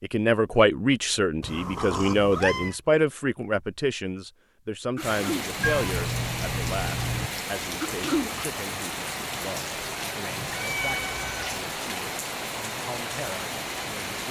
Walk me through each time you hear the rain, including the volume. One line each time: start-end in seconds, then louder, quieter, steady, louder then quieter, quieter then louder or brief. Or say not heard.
5.0-14.2 steady.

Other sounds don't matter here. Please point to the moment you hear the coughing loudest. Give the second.
8 s.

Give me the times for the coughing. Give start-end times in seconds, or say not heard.
5.0-5.5, 7.8-8.3.